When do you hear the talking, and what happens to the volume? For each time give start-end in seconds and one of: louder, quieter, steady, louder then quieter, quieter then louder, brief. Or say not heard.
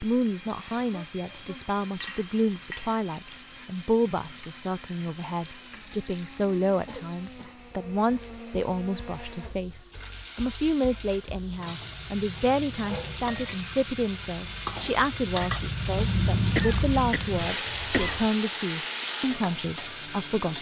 0.0-20.5 steady.